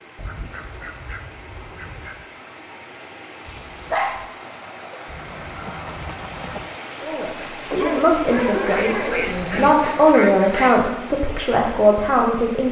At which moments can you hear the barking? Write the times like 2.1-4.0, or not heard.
3.5-4.2, 7.7-9.7.